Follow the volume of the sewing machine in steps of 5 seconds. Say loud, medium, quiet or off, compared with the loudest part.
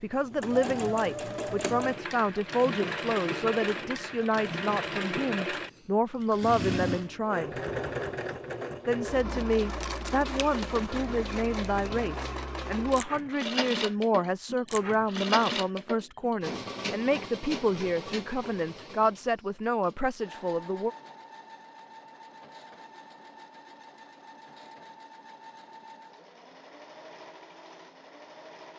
loud, loud, loud, loud, quiet, quiet.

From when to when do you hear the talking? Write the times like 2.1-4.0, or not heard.
0.0-7.5, 8.8-20.9.